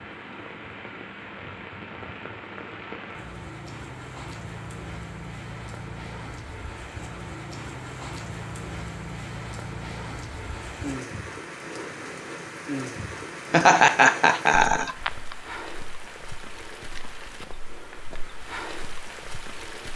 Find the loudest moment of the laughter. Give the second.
14 s.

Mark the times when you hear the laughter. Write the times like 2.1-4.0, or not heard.
13.5-15.3.